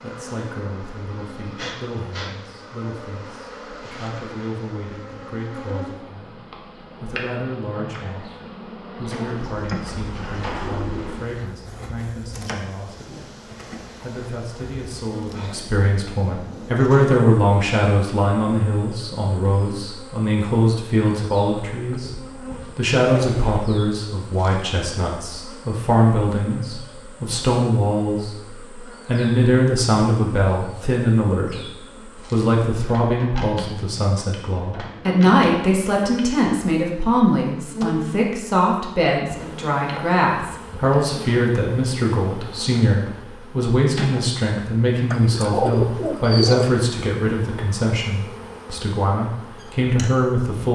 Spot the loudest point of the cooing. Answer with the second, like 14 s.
46 s.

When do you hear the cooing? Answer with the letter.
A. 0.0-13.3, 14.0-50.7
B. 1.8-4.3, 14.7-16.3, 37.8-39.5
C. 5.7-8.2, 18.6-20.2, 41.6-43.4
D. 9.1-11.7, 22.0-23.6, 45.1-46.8
D.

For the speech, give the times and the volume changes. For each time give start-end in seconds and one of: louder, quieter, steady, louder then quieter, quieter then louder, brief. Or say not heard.
0.0-13.3 steady
14.0-50.7 steady.